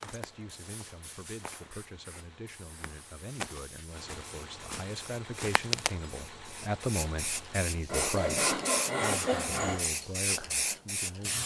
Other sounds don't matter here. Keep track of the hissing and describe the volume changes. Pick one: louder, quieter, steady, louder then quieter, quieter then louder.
louder.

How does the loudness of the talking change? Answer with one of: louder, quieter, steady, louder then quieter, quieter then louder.
louder then quieter.